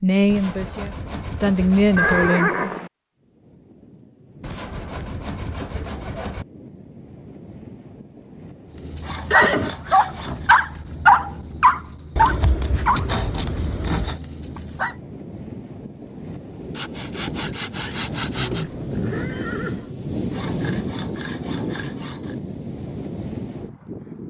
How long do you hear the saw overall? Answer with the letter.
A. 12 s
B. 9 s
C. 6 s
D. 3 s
A.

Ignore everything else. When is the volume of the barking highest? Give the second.
11 s.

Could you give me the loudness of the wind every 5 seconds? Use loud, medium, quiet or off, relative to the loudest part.
quiet, quiet, quiet, loud, loud.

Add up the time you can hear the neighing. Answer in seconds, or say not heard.
4 s.